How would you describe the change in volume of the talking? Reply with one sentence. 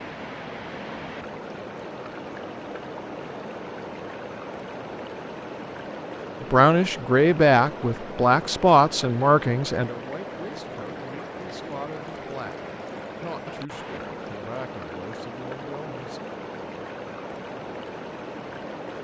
The loudness of the talking goes down.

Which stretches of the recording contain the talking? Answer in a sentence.
You can hear the talking from 6.4 to 12.6 s and from 13.2 to 16.2 s.